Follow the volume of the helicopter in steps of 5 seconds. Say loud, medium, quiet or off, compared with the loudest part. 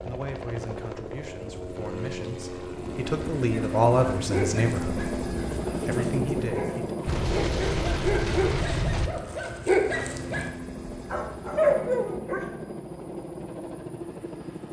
loud, loud, medium.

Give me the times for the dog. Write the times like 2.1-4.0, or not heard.
3.4-12.5.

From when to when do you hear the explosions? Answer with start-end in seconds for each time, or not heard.
7.0-9.1.